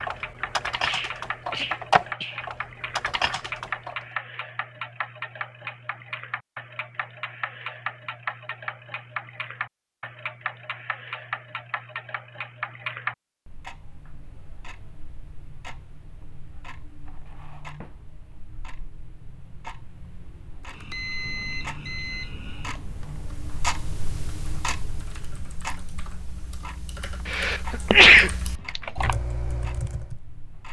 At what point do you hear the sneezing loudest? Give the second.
28 s.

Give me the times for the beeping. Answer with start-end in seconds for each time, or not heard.
20.7-22.8.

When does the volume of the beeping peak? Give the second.
21 s.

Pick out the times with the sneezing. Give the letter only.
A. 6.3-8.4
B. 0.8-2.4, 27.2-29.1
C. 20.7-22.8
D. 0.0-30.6
B.